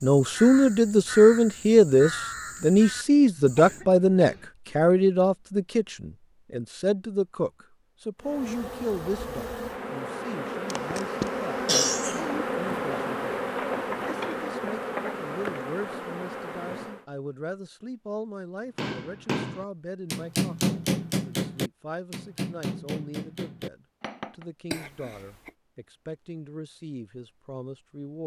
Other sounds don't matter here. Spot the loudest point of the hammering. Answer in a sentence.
The volume of the hammering peaks at 21 seconds.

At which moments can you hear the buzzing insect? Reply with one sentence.
The buzzing insect can be heard from 8.2 to 17.1 s.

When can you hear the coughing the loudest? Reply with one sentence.
The loudest moment of the coughing is at 12 seconds.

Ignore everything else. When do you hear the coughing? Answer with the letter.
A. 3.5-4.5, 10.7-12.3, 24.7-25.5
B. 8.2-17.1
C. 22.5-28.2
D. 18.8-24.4
A.